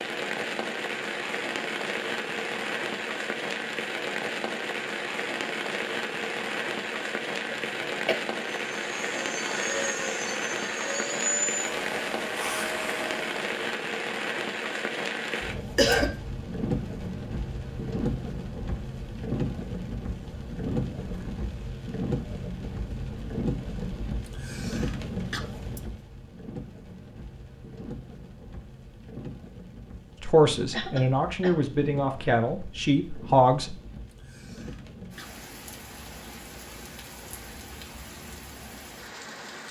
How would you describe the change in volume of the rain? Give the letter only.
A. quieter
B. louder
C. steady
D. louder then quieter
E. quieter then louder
A.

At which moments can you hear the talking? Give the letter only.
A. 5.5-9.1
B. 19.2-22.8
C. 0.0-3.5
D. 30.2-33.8
D.